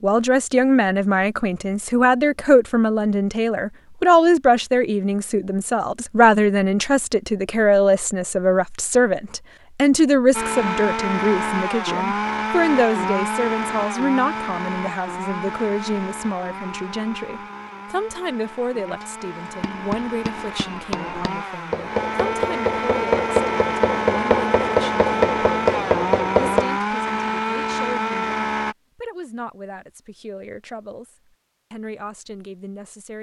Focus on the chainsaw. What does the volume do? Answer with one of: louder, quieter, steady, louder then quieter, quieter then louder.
quieter then louder.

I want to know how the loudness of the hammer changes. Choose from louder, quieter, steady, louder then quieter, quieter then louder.
louder.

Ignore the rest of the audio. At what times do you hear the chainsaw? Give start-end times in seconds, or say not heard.
10.3-28.8.